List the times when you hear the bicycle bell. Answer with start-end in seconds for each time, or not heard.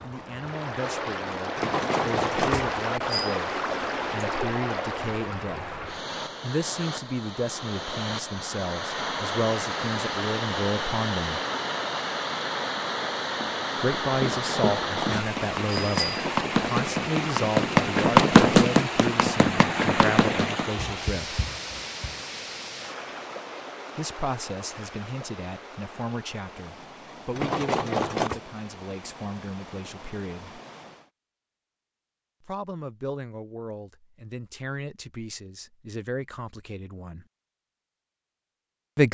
1.6-3.4, 14.3-16.2, 27.4-28.4.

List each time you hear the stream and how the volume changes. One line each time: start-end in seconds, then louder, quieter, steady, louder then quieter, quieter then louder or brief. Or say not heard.
0.0-31.1 quieter.